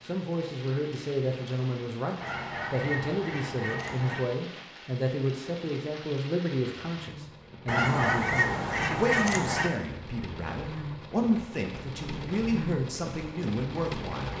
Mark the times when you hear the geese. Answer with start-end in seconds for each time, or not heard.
2.2-4.2, 7.7-9.7.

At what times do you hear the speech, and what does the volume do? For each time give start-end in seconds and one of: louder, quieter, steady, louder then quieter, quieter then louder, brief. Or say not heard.
0.1-14.3 steady.